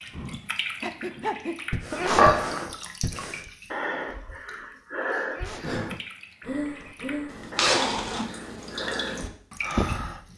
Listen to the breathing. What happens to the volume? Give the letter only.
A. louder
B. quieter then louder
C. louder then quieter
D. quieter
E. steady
E.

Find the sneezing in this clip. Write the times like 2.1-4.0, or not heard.
1.9-2.5, 5.2-5.8.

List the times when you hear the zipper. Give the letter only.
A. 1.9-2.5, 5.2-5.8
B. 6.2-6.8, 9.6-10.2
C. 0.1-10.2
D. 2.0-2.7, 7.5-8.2
D.